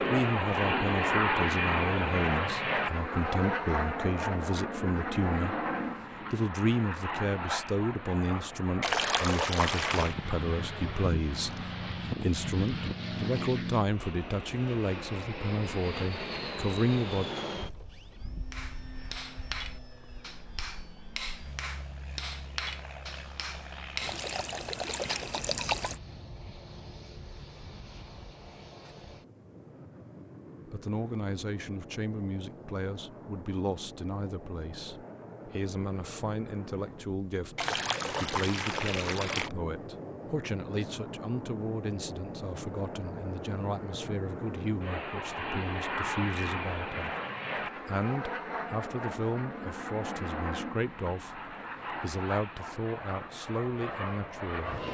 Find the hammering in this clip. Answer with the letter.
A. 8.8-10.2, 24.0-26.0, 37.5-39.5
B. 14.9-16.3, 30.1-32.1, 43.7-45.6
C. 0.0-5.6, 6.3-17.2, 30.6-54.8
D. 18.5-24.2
D.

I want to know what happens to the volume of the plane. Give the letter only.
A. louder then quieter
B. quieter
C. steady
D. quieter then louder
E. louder
D.